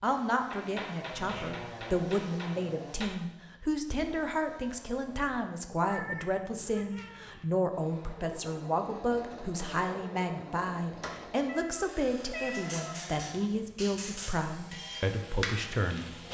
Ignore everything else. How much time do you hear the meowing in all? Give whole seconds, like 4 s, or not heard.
4 s.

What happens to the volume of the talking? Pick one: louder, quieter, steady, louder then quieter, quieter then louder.
steady.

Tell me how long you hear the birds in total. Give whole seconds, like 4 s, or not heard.
not heard.